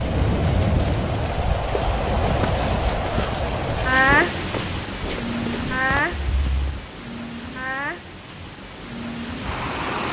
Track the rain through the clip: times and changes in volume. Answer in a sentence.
The rain can be heard from 0.0 to 10.0 s, getting quieter.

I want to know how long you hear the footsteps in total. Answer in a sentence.
The footsteps can be heard for 5 seconds in total.